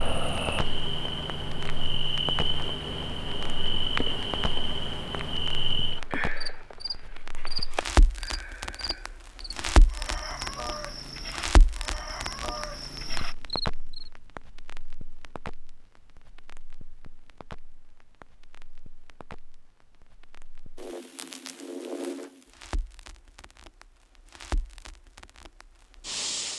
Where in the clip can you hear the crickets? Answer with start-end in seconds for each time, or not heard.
0.0-14.1.